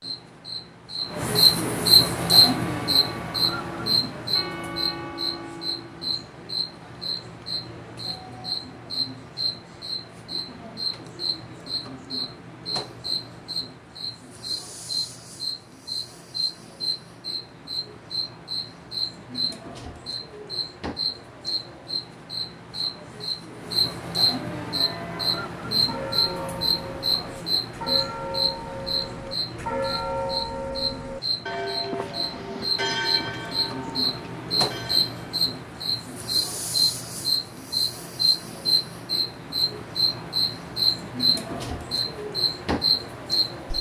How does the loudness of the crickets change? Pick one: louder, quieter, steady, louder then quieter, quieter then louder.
quieter then louder.